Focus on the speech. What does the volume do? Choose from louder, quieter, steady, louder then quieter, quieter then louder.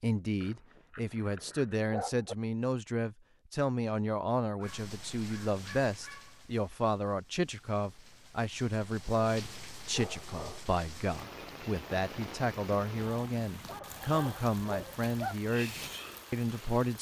steady.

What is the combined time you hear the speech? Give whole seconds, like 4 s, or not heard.
17 s.